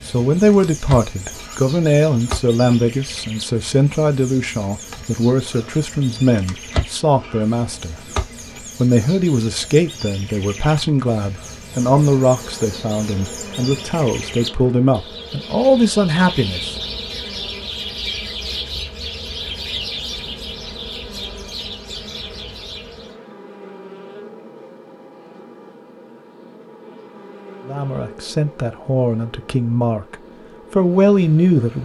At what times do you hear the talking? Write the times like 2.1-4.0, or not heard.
0.0-8.0, 8.6-16.8, 27.6-31.8.